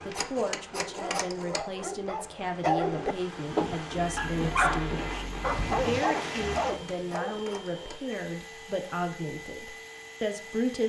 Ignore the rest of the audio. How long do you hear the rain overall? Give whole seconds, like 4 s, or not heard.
7 s.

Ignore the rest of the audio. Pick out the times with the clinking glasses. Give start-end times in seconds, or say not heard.
not heard.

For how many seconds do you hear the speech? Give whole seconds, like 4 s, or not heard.
11 s.